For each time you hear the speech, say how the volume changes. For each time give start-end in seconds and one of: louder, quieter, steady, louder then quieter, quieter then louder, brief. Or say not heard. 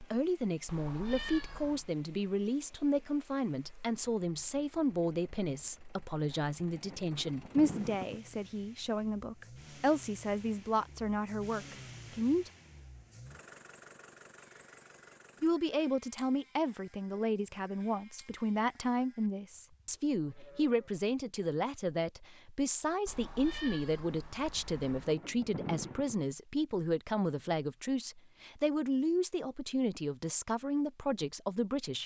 0.0-12.5 steady
15.4-32.0 steady.